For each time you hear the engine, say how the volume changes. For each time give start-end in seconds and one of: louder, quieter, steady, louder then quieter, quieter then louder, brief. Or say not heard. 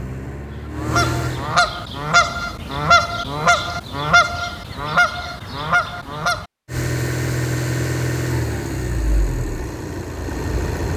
0.0-1.6 brief
6.7-10.9 quieter.